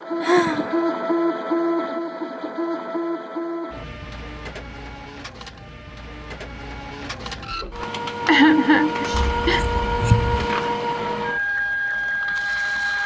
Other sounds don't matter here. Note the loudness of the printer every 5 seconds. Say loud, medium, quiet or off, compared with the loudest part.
loud, medium, loud.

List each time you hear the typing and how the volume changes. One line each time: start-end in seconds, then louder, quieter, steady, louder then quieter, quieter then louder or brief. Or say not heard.
not heard.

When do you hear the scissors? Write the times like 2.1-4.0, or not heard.
9.3-10.5.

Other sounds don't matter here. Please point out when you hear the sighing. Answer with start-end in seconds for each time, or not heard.
0.2-0.8, 8.2-9.6.